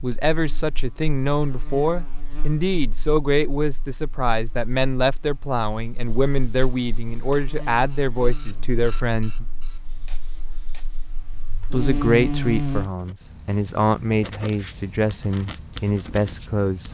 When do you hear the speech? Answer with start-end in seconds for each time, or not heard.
0.0-9.4, 11.7-16.9.